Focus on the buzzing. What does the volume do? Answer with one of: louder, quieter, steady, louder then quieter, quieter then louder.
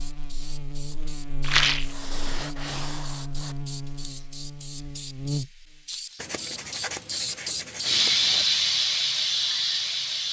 louder.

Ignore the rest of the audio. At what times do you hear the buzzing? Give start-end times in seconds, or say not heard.
0.0-5.8.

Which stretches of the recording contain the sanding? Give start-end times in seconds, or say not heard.
1.7-3.5, 6.2-8.4.